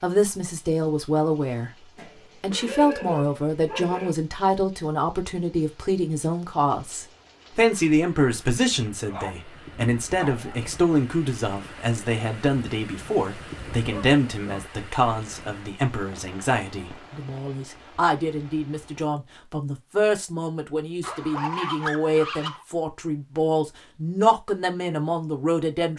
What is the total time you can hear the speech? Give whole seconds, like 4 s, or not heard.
25 s.